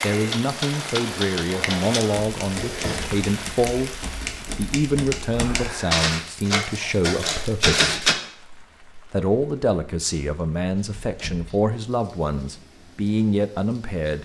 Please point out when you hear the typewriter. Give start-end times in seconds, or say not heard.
0.2-8.2.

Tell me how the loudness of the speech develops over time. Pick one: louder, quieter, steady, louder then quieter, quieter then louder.
steady.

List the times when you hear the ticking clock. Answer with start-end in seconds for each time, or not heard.
not heard.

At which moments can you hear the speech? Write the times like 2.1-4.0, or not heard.
0.0-8.0, 9.1-14.2.